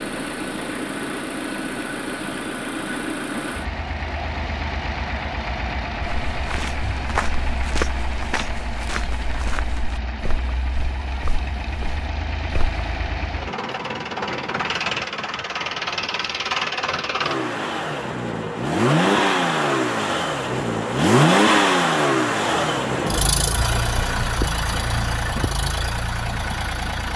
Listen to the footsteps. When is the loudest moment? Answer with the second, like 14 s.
8 s.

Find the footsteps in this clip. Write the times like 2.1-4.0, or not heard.
6.0-12.8.